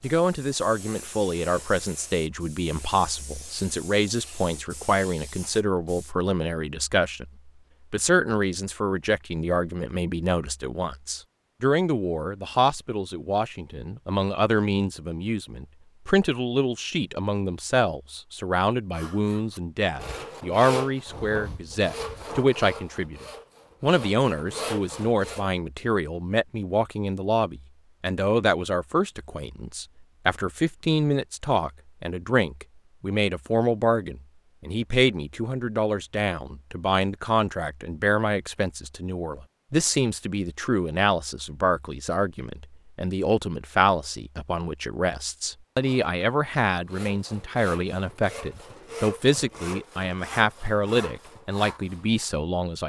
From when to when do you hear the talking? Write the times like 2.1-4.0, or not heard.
0.0-52.8.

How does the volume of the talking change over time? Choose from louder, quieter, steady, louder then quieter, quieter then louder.
steady.